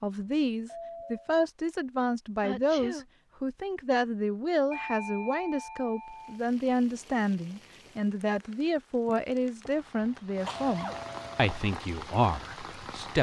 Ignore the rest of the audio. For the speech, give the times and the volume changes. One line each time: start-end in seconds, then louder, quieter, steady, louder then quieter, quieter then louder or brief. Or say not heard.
0.0-13.1 steady.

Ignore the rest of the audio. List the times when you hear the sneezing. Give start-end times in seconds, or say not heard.
2.4-3.0, 10.4-11.1.